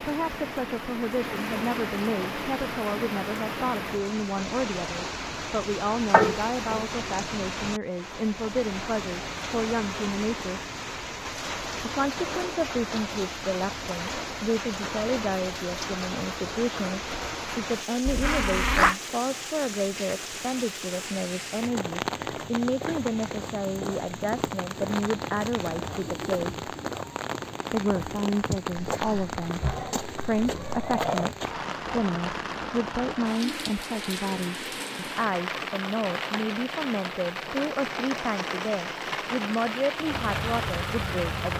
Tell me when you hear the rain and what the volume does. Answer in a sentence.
You can hear the rain from 0.0 to 41.5 s, at a steady volume.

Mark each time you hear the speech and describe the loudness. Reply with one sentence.
The speech can be heard from 0.0 to 10.6 s, at a steady volume; from 11.8 to 26.6 s, at a steady volume; and from 27.7 to 41.5 s, at a steady volume.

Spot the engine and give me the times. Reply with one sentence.
You can hear the engine from 40.0 to 41.5 s.